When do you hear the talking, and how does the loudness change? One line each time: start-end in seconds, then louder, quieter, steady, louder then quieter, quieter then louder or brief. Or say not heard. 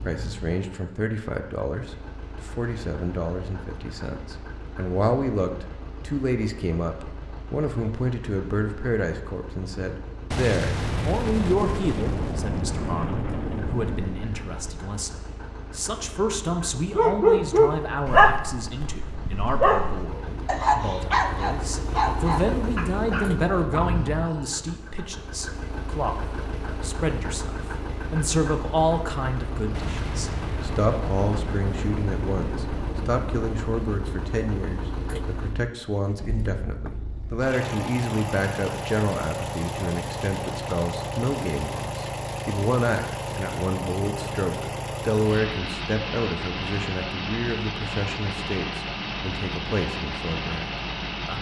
0.0-51.3 steady.